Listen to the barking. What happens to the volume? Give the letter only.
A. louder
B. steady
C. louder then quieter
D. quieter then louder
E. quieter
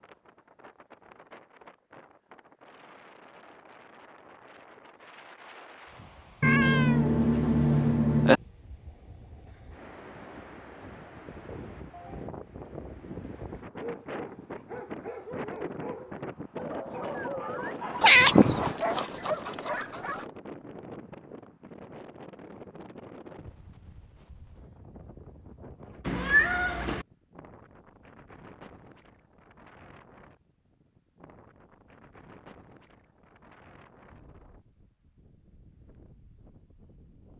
A.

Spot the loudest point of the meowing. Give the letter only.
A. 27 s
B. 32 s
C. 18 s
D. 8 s
C.